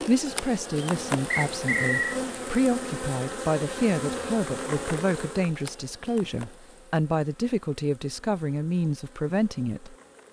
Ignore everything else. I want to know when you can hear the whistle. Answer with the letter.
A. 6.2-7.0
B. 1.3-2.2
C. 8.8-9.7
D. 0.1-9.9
B.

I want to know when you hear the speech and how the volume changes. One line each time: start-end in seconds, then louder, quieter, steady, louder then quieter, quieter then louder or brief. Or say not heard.
0.1-9.9 steady.